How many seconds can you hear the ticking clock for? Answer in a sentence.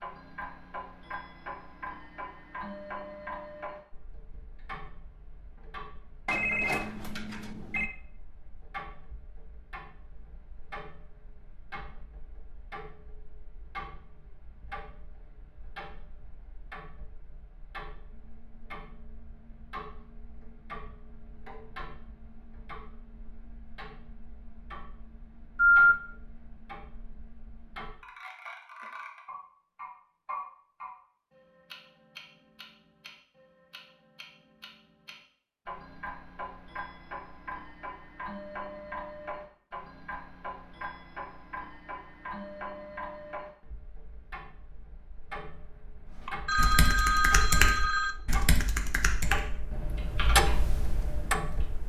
You can hear the ticking clock for 52 seconds altogether.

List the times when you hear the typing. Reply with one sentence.
The typing can be heard from 46.2 to 51.7 s.